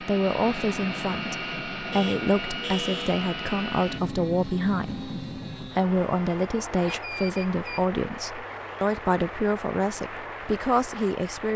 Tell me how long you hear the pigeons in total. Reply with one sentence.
The pigeons can't be heard in this clip.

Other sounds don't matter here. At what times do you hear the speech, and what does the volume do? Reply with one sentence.
The speech can be heard from 0.0 to 11.5 s, at a steady volume.